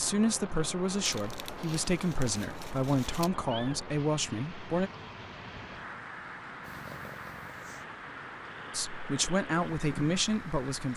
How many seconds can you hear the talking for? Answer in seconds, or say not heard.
7 s.